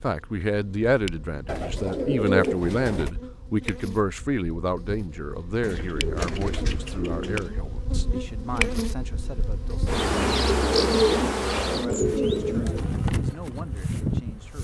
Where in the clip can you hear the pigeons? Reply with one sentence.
You can hear the pigeons from 1.4 to 3.1 s, from 5.6 to 7.5 s and from 10.5 to 12.8 s.